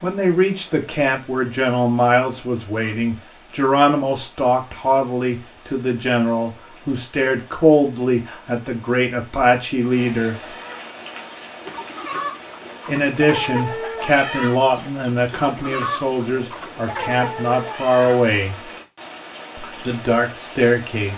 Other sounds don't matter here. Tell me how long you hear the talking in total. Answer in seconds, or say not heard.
18 s.